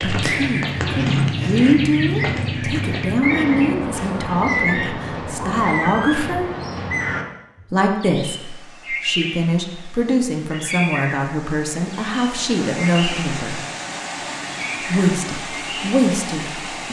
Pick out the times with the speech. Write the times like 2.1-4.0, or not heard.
0.0-6.5, 7.7-13.6, 14.8-16.8.